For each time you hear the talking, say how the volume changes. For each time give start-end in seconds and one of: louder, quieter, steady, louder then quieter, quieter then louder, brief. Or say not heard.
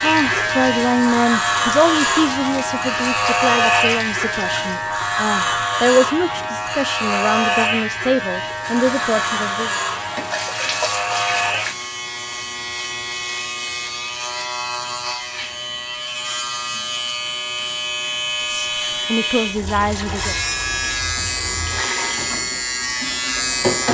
0.0-9.7 quieter then louder
18.5-20.4 brief.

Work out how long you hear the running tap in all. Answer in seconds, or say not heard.
12 s.